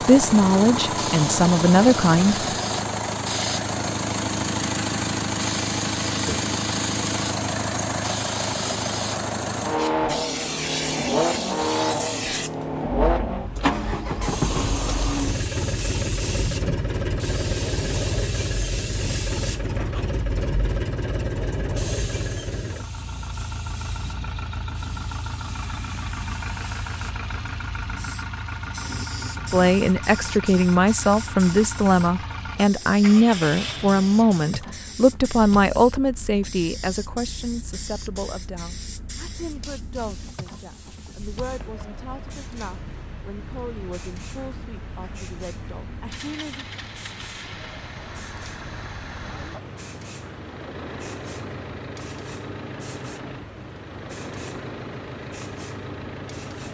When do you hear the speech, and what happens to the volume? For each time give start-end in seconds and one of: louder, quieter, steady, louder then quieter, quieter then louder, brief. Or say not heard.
0.0-2.5 brief
29.5-46.6 quieter.